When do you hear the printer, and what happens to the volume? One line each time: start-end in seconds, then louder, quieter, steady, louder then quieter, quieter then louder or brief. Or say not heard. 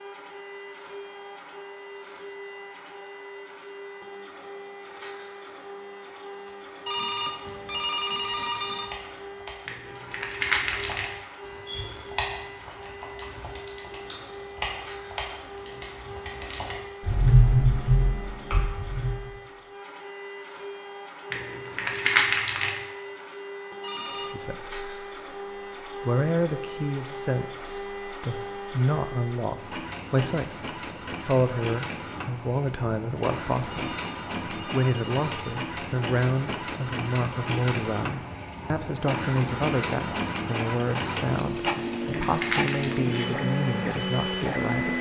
0.0-44.9 louder.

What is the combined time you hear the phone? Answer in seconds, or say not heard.
5 s.